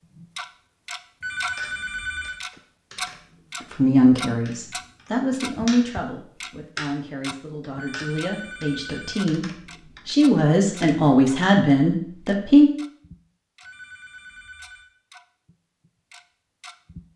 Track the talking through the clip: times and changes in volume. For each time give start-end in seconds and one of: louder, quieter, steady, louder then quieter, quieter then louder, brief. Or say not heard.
3.7-12.7 quieter then louder.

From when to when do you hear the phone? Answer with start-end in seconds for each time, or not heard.
1.2-2.4, 7.8-9.2, 13.6-14.9.